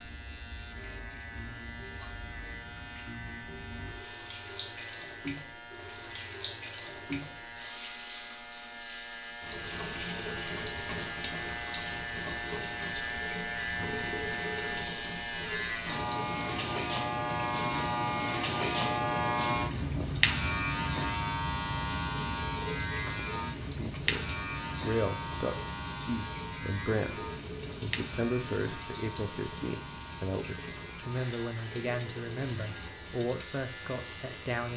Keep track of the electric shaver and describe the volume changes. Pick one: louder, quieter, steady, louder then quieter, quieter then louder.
louder then quieter.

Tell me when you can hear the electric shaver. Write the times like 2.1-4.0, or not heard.
0.0-34.7.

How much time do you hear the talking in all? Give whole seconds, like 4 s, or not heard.
11 s.